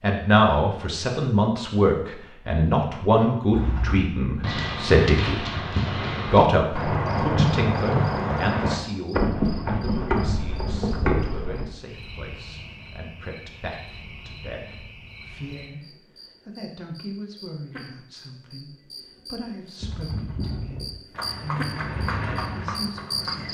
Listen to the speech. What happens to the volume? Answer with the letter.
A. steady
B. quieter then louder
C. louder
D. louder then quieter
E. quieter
E.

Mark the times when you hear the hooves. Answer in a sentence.
The hooves can be heard from 3.5 to 11.7 s and from 19.8 to 23.4 s.